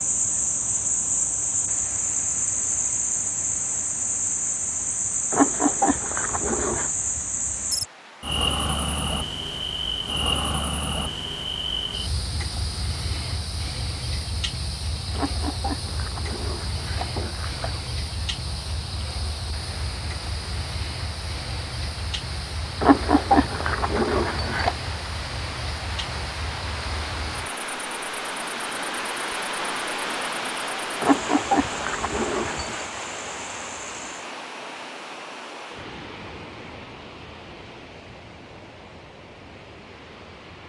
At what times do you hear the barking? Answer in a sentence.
The barking can be heard from 5.3 to 6.9 s, from 15.1 to 17.9 s, from 22.8 to 24.8 s and from 31.0 to 32.9 s.